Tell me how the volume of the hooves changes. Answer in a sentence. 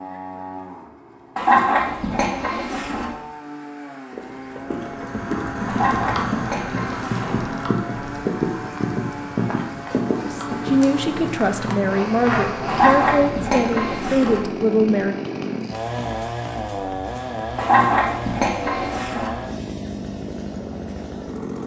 The volume of the hooves stays about the same.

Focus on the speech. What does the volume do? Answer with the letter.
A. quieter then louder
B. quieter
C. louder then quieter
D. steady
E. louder
D.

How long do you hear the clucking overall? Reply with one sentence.
You can hear the clucking for 7 seconds altogether.